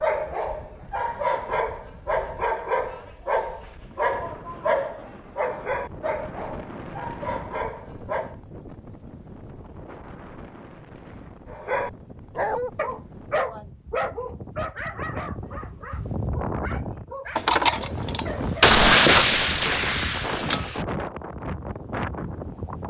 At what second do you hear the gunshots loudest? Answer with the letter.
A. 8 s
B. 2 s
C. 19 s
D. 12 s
C.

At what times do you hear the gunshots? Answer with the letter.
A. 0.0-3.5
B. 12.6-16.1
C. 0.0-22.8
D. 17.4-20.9
D.